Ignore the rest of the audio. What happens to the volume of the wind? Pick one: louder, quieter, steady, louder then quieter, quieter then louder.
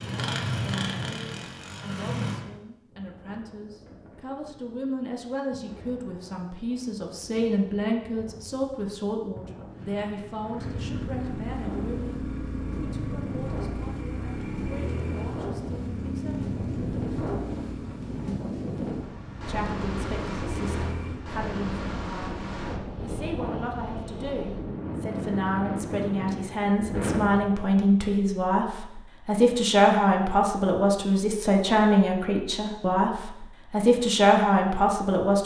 louder.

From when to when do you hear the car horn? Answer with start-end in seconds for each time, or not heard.
not heard.